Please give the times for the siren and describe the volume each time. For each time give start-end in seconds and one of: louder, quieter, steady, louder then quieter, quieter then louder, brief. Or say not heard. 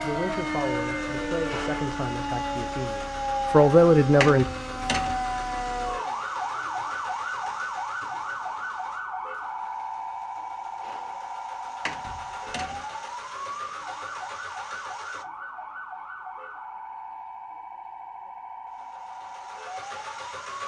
0.0-20.6 quieter.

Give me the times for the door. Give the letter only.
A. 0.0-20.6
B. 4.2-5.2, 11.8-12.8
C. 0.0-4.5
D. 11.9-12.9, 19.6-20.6
B.